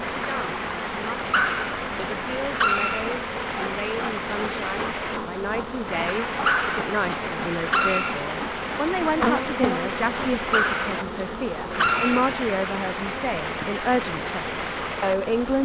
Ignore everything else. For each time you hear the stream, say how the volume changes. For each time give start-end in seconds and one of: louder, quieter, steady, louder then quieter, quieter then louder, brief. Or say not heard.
0.0-15.3 steady.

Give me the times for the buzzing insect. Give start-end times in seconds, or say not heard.
0.0-15.6.